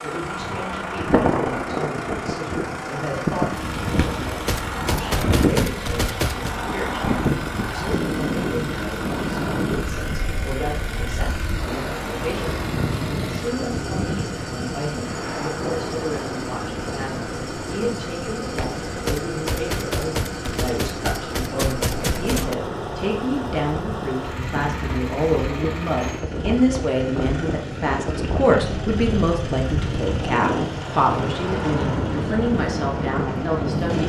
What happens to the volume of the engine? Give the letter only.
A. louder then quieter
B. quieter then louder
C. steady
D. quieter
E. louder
C.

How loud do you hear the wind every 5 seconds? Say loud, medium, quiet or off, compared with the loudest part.
loud, loud, medium, medium, medium, medium, loud.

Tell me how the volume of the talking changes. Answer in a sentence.
The loudness of the talking goes up.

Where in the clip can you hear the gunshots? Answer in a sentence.
The gunshots can be heard from 4.0 to 6.5 s and from 18.6 to 22.6 s.